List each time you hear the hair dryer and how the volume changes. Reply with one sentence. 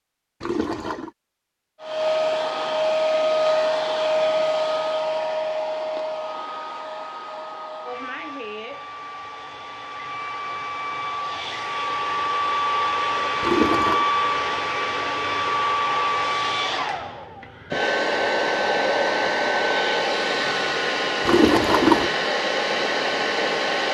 The hair dryer can be heard from 1.8 to 23.8 s, getting quieter then louder.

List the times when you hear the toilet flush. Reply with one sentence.
The toilet flush can be heard from 0.4 to 1.1 s, from 13.4 to 14.1 s and from 21.2 to 22.1 s.